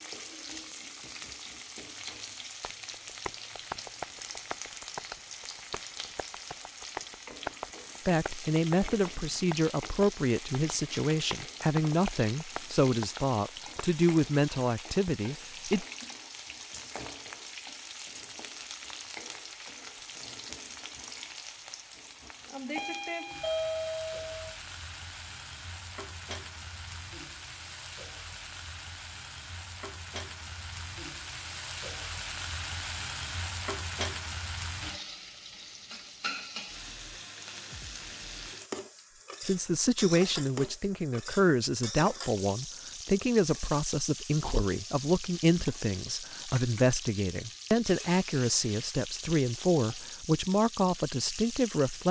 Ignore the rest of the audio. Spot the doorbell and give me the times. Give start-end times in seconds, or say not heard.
22.7-24.3.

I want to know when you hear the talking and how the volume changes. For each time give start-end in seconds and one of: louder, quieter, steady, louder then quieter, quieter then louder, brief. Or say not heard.
8.1-15.8 steady
39.5-52.0 steady.